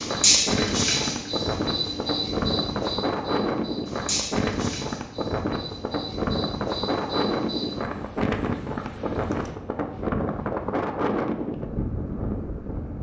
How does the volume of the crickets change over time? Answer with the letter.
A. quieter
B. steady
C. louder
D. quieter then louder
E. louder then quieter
A.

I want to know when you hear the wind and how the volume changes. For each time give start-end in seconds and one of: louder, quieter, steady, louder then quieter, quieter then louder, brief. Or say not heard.
0.0-12.9 steady.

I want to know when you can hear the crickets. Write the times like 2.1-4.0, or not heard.
0.0-9.6.